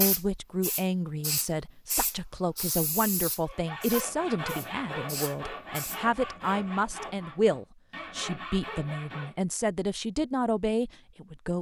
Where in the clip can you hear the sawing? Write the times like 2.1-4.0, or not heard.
3.5-9.4.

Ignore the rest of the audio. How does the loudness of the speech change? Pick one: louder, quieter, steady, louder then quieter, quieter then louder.
steady.